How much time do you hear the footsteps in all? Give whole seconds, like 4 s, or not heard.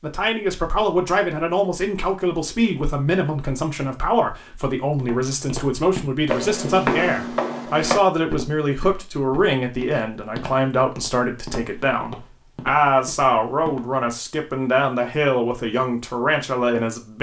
9 s.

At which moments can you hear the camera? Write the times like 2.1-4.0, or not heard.
not heard.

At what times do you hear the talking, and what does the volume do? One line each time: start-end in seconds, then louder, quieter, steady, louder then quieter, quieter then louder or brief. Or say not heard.
0.0-17.1 steady.